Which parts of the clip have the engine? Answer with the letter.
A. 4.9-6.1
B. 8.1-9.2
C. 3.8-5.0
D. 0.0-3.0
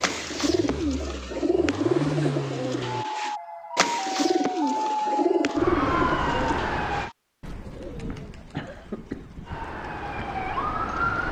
D.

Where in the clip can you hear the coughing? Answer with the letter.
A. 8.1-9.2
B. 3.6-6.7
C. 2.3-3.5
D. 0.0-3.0
A.